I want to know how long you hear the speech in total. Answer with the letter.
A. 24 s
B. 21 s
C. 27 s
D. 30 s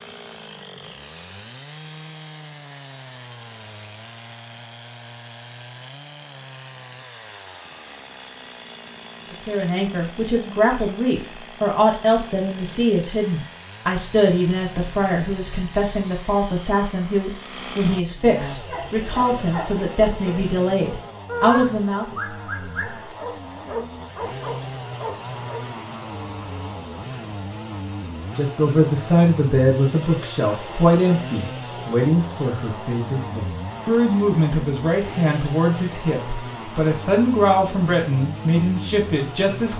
A.